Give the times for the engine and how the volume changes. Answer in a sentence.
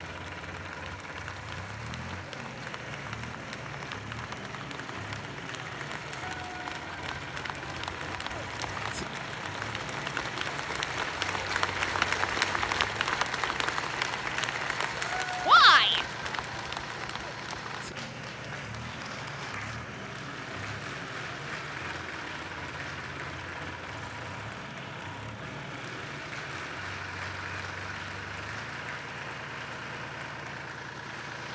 You can hear the engine from 0.0 to 31.5 s, at a steady volume.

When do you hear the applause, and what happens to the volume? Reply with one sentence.
The applause can be heard from 0.0 to 31.5 s, getting louder then quieter.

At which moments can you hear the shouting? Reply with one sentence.
The shouting can be heard from 15.4 to 16.1 s.